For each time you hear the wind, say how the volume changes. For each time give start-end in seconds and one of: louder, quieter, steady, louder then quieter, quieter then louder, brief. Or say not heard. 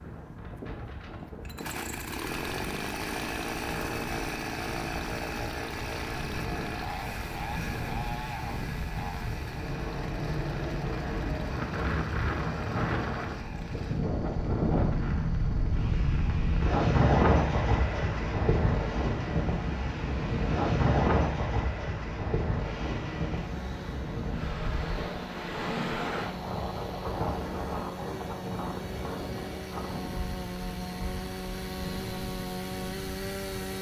0.0-33.7 louder then quieter.